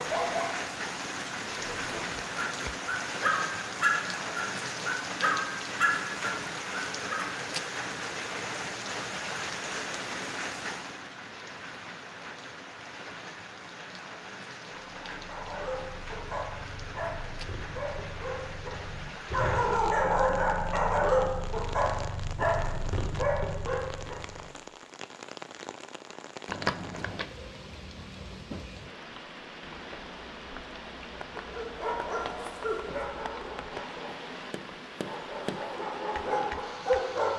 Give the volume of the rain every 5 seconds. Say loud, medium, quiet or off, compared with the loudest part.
loud, loud, medium, medium, medium, medium, medium, medium.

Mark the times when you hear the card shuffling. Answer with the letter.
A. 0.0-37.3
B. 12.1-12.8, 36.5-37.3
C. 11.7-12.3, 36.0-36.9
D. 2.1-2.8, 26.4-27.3
D.